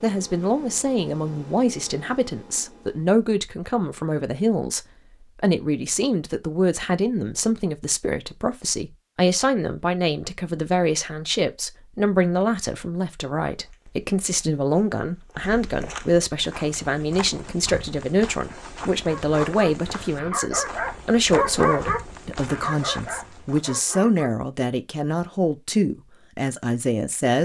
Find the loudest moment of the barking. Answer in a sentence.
The loudest moment of the barking is at 22 seconds.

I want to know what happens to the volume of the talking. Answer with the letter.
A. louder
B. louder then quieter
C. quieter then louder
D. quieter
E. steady
E.